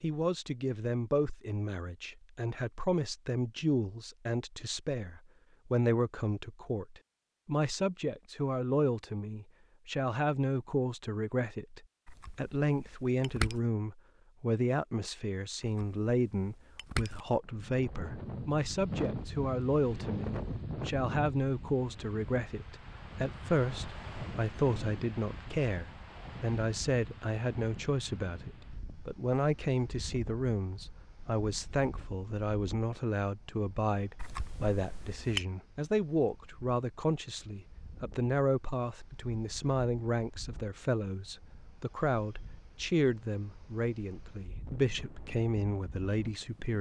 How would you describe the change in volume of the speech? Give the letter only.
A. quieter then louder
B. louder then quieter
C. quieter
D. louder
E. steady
E.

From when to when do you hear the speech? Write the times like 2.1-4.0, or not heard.
0.0-46.7.